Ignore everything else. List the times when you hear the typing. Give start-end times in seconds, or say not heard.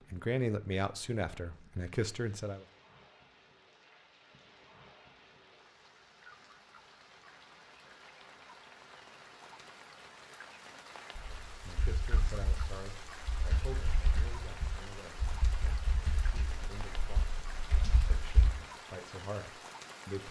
11.2-18.5.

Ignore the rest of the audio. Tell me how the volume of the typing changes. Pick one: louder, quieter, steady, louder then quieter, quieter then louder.
steady.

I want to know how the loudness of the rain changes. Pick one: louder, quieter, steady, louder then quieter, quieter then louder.
louder.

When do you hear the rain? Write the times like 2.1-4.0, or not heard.
0.0-20.2.